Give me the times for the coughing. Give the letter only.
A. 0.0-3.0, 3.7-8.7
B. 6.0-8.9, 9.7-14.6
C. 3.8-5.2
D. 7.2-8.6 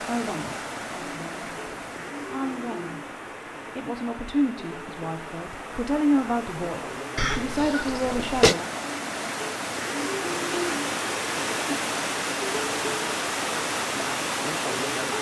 D.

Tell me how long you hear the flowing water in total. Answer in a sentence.
You can hear the flowing water for 15 seconds altogether.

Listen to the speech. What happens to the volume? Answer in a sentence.
The volume of the speech goes up.